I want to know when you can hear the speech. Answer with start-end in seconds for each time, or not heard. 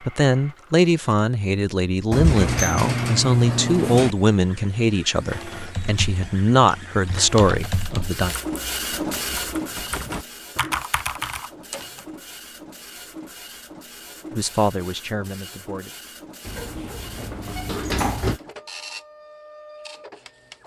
0.1-8.3, 14.3-15.9.